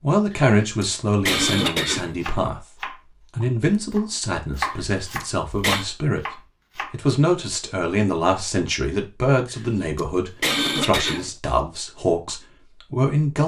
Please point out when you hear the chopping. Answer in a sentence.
You can hear the chopping from 1.6 to 7.0 s.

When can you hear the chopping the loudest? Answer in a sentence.
The loudest moment of the chopping is at 5 seconds.